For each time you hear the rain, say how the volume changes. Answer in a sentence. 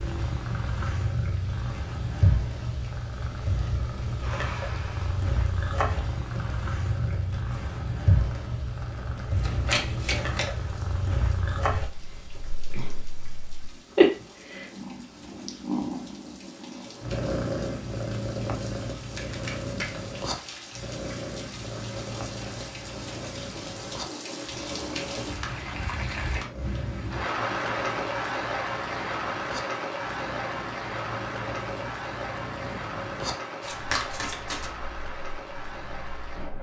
You can hear the rain from 0.0 to 36.5 s, getting louder.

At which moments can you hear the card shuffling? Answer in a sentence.
The card shuffling can be heard from 9.4 to 10.5 s, from 19.1 to 20.6 s and from 33.6 to 34.7 s.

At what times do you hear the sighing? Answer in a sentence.
The sighing can be heard from 4.2 to 5.2 s.